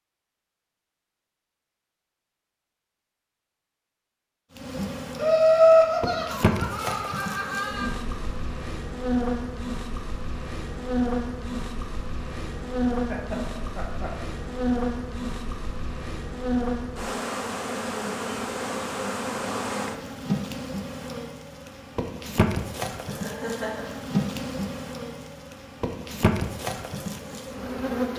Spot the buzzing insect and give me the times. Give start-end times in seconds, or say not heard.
4.5-28.1.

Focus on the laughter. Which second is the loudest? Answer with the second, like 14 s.
6 s.